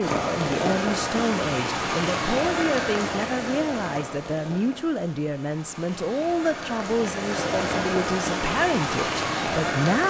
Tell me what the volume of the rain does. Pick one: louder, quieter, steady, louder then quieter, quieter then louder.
quieter then louder.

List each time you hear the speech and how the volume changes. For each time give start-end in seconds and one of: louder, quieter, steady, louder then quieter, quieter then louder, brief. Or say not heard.
0.0-10.0 steady.